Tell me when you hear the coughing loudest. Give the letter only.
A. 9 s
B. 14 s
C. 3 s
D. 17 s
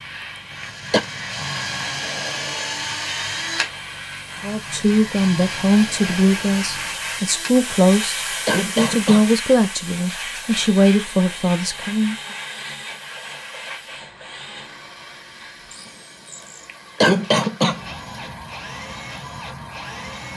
D.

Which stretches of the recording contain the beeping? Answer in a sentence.
The beeping can't be heard in this clip.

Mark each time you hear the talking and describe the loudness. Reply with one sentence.
The talking can be heard from 4.4 to 12.2 s, at a steady volume.